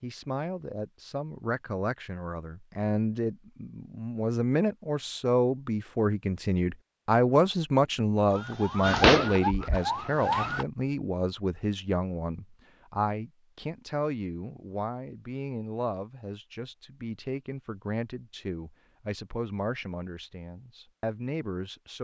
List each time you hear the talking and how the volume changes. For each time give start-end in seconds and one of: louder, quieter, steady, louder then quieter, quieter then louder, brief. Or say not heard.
0.0-21.9 louder then quieter.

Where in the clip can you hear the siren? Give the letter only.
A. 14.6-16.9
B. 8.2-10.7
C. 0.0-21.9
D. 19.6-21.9
B.